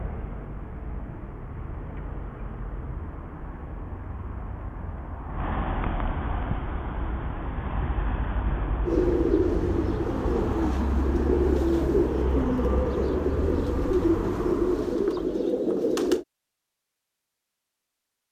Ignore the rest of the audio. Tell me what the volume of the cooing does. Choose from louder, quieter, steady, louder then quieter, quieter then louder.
steady.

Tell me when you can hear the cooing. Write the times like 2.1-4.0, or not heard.
8.8-16.2.